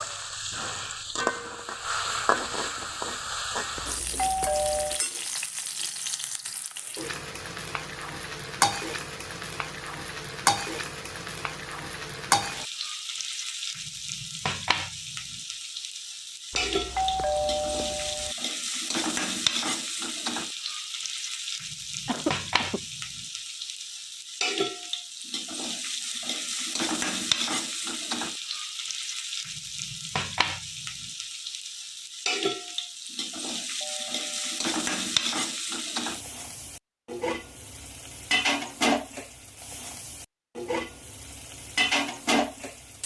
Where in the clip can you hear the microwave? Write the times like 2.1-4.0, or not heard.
not heard.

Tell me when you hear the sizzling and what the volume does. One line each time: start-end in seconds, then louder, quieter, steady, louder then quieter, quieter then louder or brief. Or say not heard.
0.0-43.0 steady.